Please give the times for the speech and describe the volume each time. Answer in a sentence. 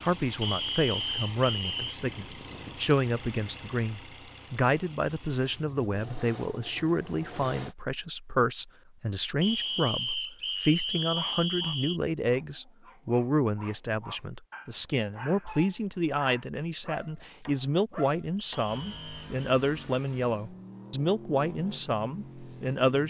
The speech can be heard from 0.0 to 23.0 s, at a steady volume.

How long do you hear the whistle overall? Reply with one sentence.
You can hear the whistle for 5 seconds altogether.